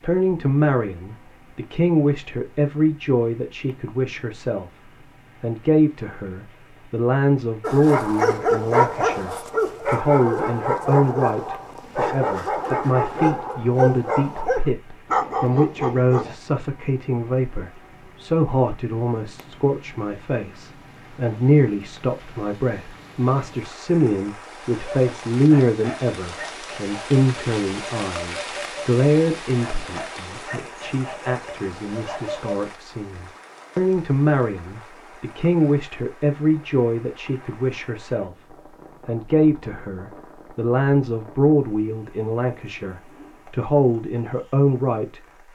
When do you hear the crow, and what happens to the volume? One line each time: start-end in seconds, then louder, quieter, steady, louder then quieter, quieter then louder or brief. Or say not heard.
not heard.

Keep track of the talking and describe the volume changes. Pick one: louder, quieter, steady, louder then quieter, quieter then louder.
steady.